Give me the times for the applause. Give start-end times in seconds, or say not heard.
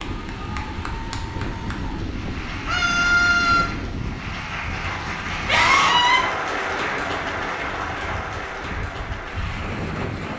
0.0-10.3.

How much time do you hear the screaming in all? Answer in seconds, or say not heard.
2 s.